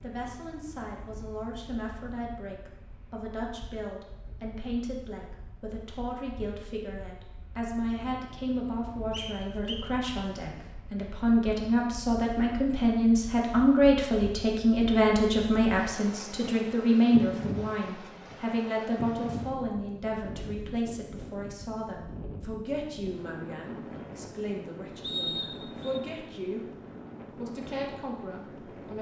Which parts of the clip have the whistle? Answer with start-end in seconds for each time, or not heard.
9.1-9.8, 25.0-26.0.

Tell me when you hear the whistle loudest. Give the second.
25 s.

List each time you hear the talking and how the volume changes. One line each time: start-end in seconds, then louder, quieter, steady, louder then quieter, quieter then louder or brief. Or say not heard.
0.0-26.7 louder then quieter
27.3-28.9 brief.